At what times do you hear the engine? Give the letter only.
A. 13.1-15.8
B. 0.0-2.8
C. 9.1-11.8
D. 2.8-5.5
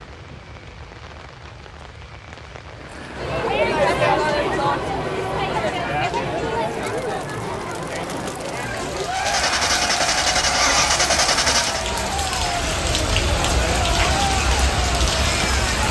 C.